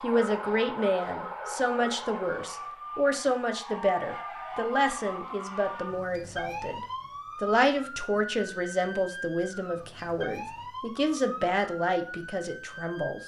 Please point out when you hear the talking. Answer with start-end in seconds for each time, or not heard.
0.0-6.8, 7.4-13.2.